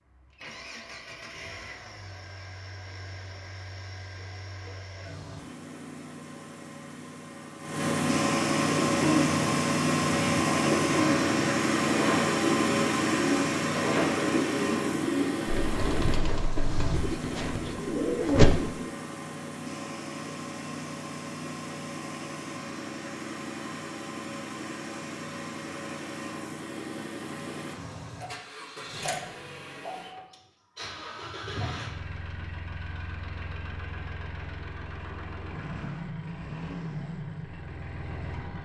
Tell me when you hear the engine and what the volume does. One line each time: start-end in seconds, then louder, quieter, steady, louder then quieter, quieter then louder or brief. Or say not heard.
0.0-38.6 louder then quieter.